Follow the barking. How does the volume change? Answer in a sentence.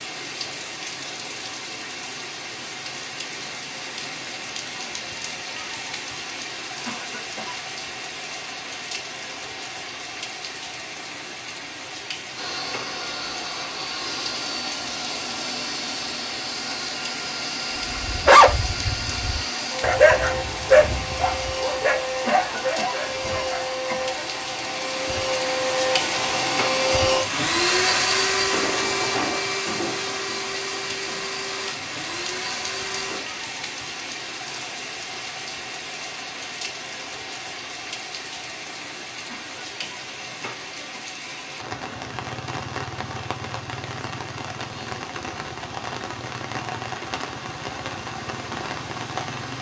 The volume of the barking goes down.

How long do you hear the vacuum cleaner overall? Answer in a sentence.
You can hear the vacuum cleaner for 21 seconds altogether.